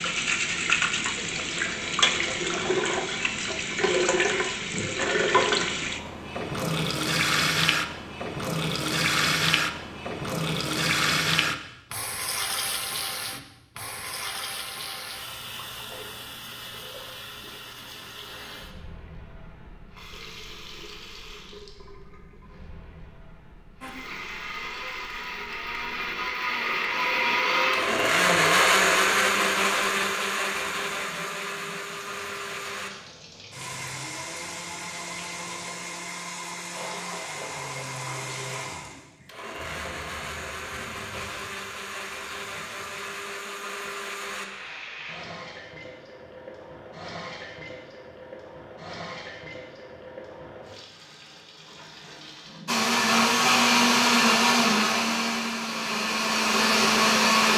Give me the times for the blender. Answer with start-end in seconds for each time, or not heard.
23.8-44.5, 52.6-57.5.